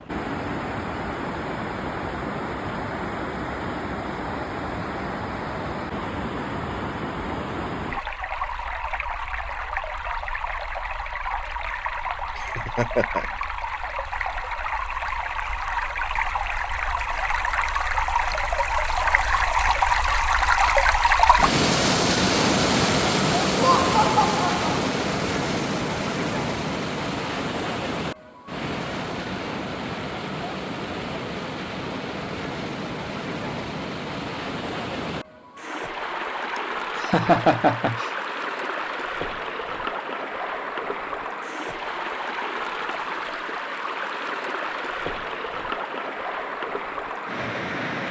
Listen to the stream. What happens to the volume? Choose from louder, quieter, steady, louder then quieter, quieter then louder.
louder then quieter.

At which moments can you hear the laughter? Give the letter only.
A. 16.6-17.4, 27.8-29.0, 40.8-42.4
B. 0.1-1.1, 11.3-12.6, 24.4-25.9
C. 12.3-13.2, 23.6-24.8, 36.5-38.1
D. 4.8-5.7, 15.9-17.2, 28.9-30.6
C.